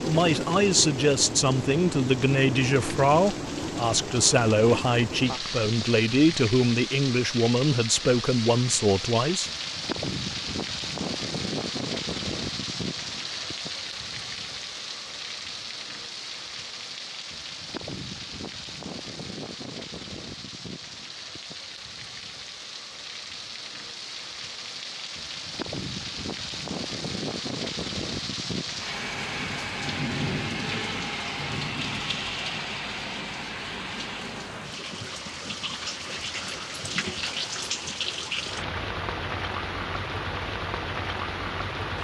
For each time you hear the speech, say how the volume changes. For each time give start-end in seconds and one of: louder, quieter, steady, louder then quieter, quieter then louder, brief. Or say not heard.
0.0-9.5 steady.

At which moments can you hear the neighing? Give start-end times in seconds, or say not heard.
not heard.